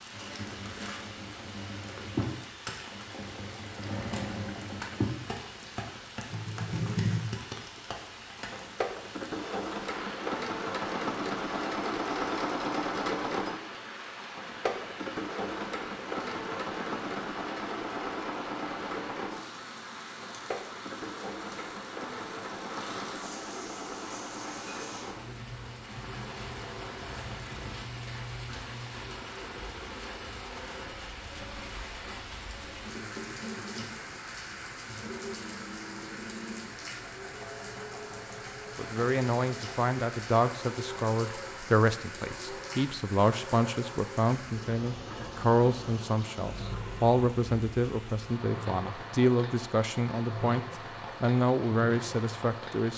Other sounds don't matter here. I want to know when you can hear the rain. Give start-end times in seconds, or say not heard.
0.0-52.9.